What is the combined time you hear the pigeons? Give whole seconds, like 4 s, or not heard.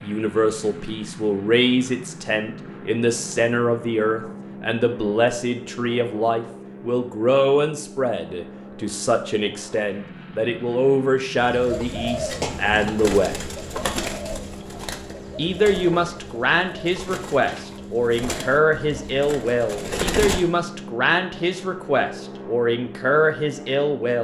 9 s.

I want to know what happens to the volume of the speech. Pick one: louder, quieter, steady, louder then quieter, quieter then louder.
steady.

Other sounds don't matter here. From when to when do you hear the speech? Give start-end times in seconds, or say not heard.
0.0-13.3, 15.3-24.1.